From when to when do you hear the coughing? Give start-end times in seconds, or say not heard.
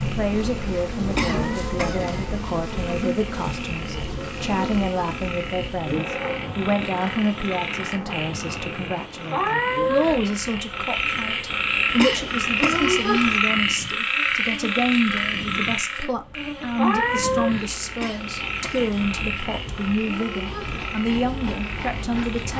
1.1-2.4, 11.8-13.4, 17.9-19.1.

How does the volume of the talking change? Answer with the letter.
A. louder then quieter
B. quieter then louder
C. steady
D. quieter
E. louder
C.